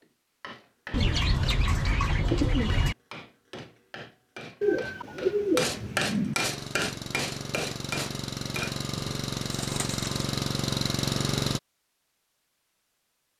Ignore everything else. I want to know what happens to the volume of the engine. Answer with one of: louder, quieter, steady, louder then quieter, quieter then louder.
louder.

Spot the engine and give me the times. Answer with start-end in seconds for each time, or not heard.
6.4-11.6.